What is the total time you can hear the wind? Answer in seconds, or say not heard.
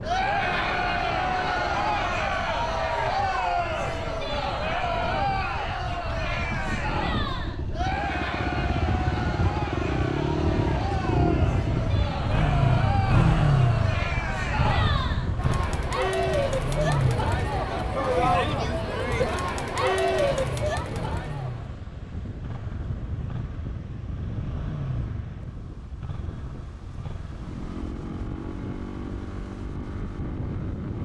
31 s.